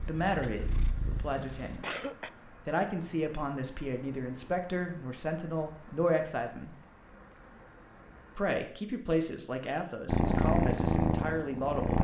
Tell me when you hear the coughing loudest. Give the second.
2 s.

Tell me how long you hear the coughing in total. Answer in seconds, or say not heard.
2 s.